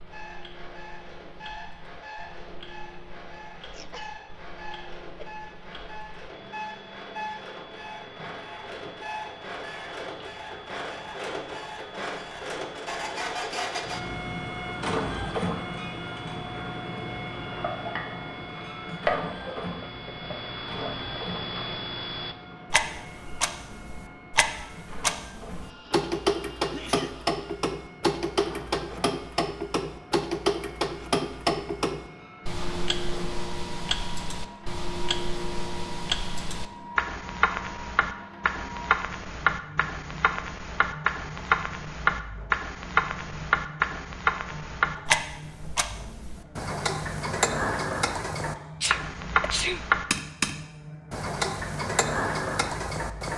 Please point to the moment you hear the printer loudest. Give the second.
15 s.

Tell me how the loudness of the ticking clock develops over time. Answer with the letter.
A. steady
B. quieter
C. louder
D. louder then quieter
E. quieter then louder
C.